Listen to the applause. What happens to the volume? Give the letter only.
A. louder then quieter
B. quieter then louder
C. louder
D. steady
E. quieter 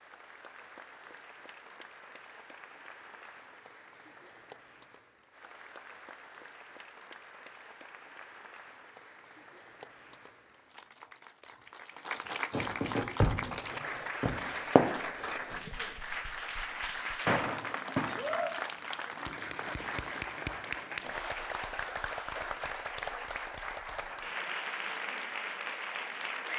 C.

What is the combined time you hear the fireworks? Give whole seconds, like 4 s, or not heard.
4 s.